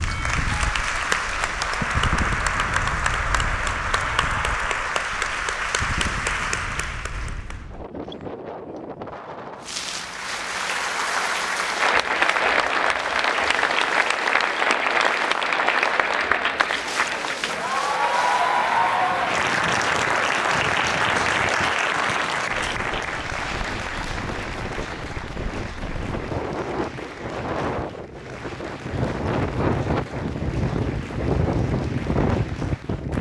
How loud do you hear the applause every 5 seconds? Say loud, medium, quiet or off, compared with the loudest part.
loud, medium, loud, loud, loud, quiet, quiet.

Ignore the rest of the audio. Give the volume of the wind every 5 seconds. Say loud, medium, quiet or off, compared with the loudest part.
medium, medium, quiet, quiet, medium, loud, loud.